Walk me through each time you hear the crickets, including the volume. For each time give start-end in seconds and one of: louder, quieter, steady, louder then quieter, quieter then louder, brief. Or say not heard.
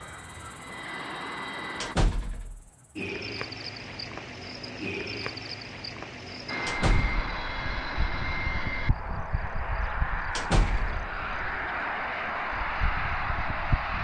0.0-14.0 louder then quieter.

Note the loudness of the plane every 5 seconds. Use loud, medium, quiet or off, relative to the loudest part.
medium, loud, loud.